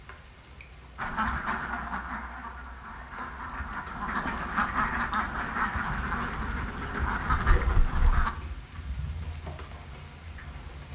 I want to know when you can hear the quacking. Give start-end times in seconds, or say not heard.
0.9-8.3.